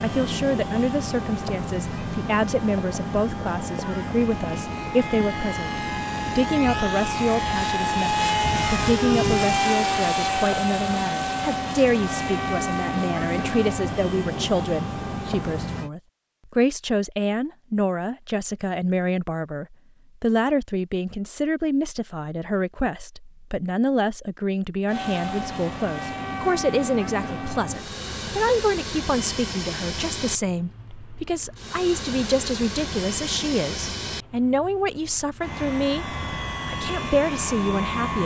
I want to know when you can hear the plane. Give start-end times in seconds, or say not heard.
0.0-15.9, 24.9-38.2.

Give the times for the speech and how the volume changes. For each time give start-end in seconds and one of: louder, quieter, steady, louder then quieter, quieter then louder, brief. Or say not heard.
0.0-38.2 steady.